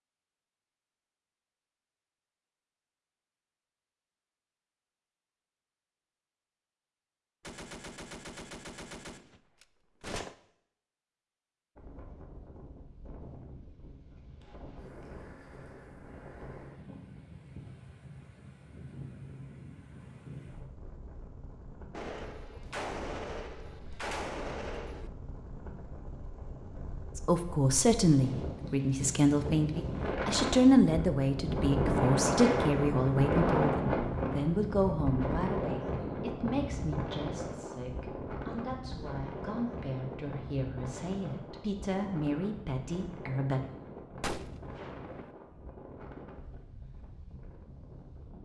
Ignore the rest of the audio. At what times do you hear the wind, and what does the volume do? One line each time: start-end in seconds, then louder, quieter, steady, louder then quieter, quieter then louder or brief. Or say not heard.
11.8-48.4 louder then quieter.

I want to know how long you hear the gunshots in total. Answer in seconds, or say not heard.
7 s.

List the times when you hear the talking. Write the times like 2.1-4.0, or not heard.
27.1-43.6.